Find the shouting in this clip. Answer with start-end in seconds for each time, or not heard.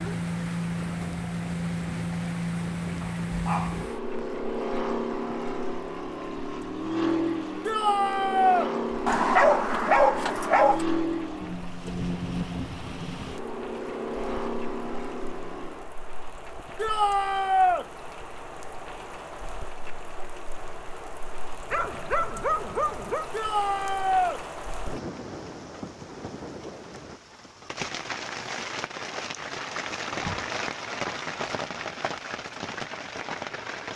7.7-8.7, 16.8-17.9, 23.3-24.4.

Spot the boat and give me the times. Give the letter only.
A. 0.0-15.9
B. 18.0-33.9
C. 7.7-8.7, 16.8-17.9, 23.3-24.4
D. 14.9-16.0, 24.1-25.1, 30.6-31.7
A.